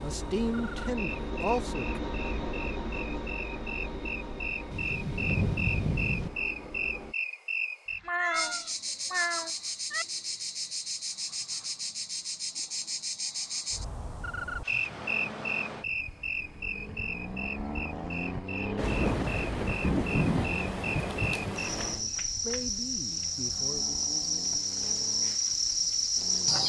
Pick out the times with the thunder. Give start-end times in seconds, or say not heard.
4.7-6.3, 18.8-22.0.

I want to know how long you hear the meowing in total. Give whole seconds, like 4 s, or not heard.
2 s.